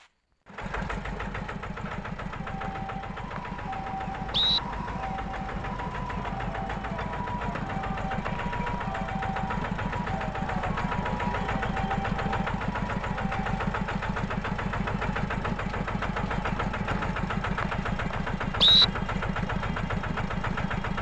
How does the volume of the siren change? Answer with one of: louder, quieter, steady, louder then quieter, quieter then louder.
steady.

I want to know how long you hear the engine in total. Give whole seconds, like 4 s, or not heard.
21 s.